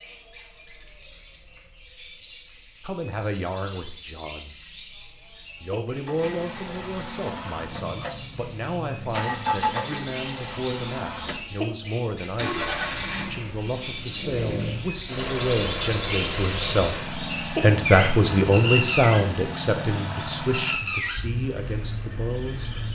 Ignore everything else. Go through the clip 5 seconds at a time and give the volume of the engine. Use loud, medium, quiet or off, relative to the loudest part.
off, loud, loud, loud, loud.